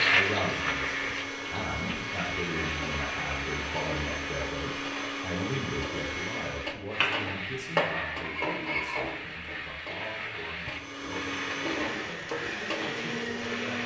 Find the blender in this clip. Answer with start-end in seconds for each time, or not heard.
0.0-6.8, 10.6-13.8.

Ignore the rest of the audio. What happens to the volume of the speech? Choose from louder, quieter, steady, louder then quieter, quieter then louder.
quieter.